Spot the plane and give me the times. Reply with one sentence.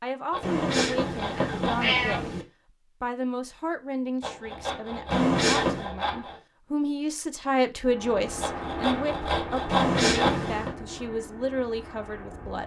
The plane can be heard from 7.8 to 12.6 s.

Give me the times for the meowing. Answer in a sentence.
The meowing can be heard from 0.4 to 2.5 s, from 5.1 to 5.9 s and from 9.7 to 10.8 s.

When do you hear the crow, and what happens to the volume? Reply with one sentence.
You can't hear the crow here.